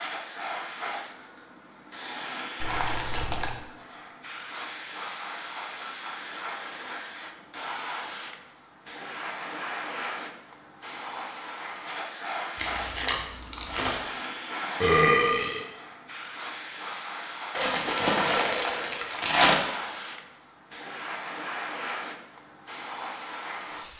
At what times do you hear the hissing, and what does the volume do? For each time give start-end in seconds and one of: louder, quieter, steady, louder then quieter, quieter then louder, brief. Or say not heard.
0.0-23.9 steady.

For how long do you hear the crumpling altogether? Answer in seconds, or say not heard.
4 s.